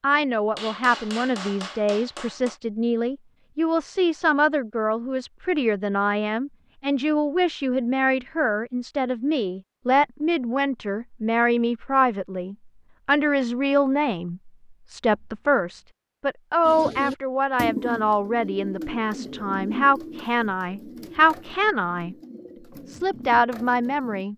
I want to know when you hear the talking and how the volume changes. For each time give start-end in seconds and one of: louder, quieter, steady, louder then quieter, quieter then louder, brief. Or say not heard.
0.0-22.1 steady
22.9-24.3 brief.